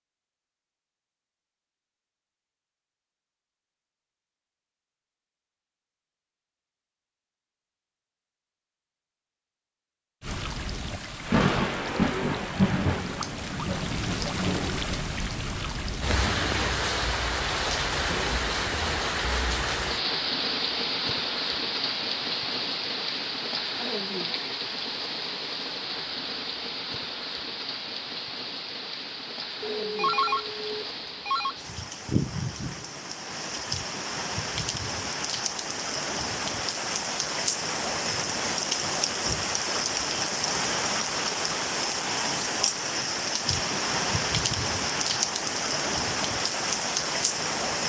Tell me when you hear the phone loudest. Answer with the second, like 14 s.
30 s.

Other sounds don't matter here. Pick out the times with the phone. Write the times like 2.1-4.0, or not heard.
29.6-31.6.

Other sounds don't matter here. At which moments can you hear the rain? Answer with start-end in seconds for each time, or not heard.
10.2-47.8.